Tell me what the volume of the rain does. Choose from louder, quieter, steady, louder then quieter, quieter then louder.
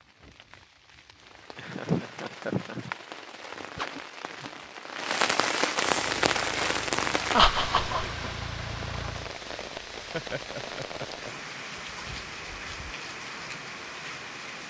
louder then quieter.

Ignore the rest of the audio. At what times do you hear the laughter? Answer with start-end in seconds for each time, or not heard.
1.6-2.9, 7.3-8.1, 10.1-11.4.